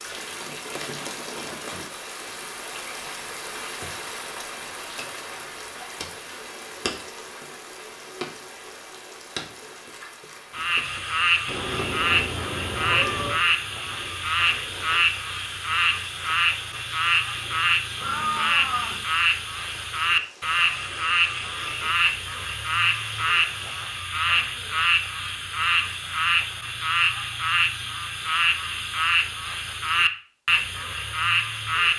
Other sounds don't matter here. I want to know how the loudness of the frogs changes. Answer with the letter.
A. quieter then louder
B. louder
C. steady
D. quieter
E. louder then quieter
C.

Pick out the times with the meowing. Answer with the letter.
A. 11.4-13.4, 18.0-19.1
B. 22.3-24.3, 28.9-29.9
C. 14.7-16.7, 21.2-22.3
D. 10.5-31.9
A.